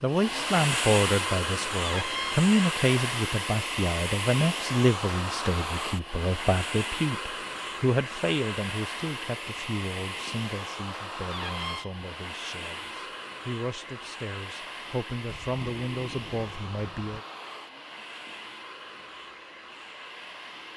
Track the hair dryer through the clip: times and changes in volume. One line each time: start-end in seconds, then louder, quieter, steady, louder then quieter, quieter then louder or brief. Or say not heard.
0.0-20.7 quieter.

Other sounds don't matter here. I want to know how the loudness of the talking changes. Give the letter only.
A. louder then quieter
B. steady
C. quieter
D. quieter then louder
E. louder
D.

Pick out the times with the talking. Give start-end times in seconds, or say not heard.
0.0-17.2.